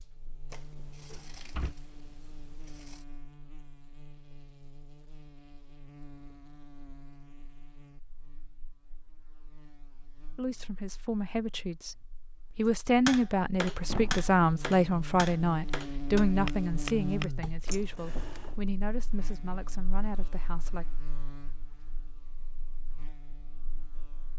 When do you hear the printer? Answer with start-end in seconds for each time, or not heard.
not heard.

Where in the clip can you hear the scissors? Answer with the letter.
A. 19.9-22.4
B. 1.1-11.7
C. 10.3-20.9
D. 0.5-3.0
D.